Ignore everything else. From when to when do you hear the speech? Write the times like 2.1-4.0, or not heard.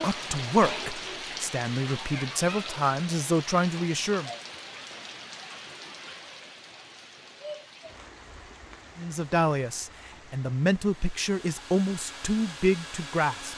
0.0-4.3, 8.9-13.5.